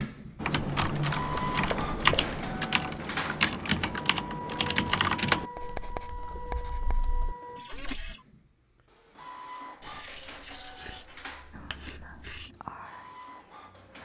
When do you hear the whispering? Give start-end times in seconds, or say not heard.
11.5-14.0.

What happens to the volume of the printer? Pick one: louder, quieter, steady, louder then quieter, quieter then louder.
quieter.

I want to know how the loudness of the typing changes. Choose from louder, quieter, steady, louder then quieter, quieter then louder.
quieter.